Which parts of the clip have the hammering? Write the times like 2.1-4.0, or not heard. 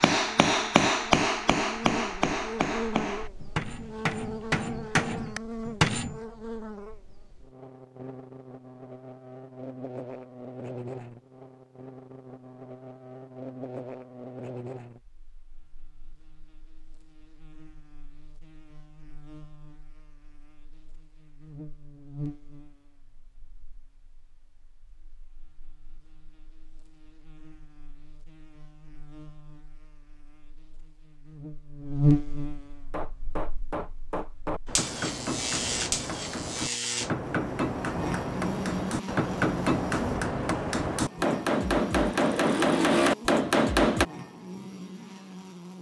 0.0-6.2, 32.9-44.0.